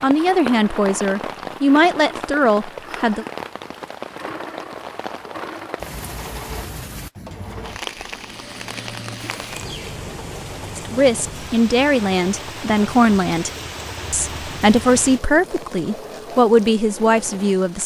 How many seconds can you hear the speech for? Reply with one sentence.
The speech can be heard for 10 seconds in total.